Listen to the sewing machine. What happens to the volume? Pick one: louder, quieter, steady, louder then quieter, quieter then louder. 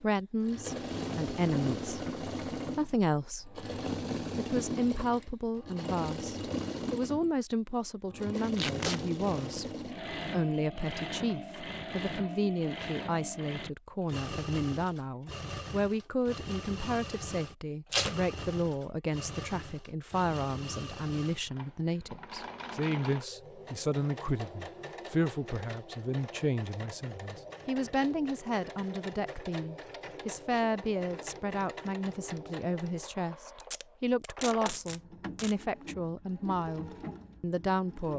quieter.